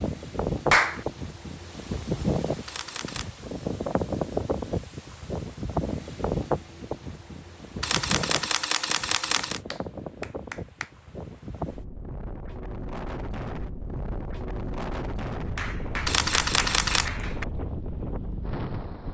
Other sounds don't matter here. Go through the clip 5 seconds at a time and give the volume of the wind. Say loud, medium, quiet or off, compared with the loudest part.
loud, loud, medium, medium.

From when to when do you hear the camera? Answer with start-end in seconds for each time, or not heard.
2.6-3.3, 7.8-9.6, 16.1-17.1.